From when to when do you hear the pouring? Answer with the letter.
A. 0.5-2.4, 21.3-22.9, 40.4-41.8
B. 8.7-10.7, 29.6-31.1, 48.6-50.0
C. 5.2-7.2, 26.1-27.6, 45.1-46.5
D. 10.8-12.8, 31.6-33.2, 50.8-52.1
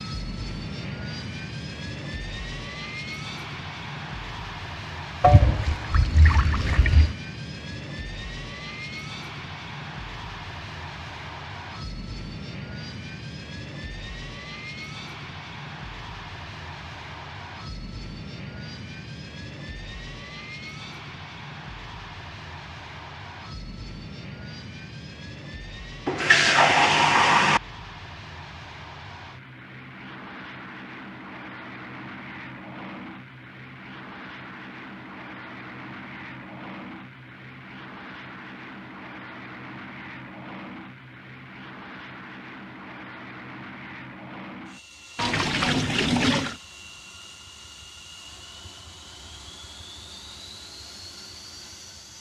C.